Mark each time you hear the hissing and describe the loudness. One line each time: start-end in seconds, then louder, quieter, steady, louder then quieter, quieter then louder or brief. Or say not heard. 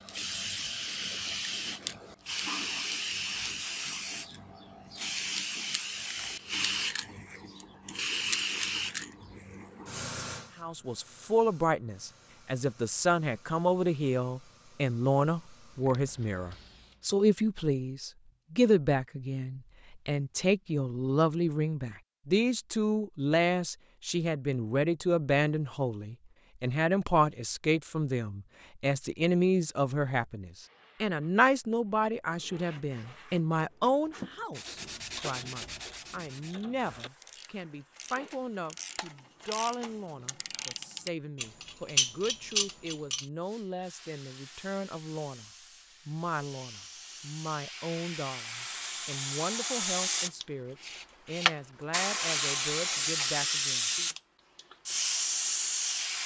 0.0-17.1 quieter
43.4-56.2 louder.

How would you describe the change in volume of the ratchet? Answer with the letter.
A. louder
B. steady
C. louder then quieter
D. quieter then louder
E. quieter
A.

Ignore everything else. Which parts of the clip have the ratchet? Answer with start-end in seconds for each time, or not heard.
34.5-43.2.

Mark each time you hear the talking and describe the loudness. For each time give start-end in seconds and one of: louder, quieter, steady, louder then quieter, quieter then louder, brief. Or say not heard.
10.6-54.1 quieter.